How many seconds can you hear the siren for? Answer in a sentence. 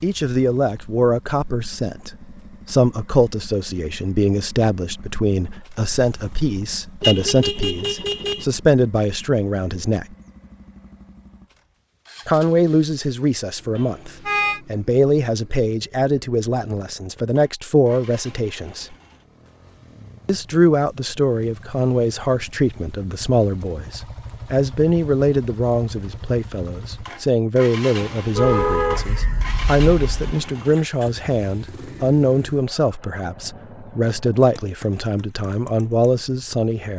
You can't hear the siren here.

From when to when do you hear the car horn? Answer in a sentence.
You can hear the car horn from 7.0 to 8.4 s, from 13.8 to 14.6 s and from 28.4 to 30.4 s.